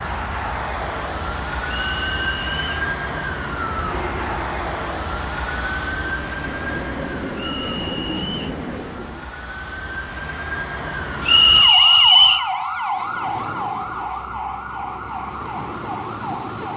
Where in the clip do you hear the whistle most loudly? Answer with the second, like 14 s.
12 s.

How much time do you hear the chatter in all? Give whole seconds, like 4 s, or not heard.
not heard.